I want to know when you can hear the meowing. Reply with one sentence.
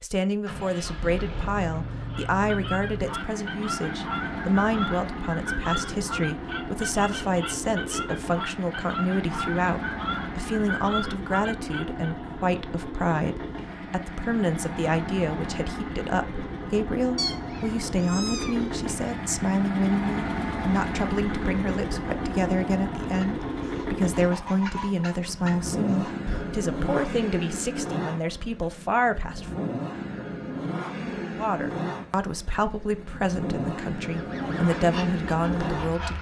The meowing can be heard from 17.1 to 19.4 s.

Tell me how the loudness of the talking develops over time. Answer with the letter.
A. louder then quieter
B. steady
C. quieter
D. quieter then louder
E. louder
B.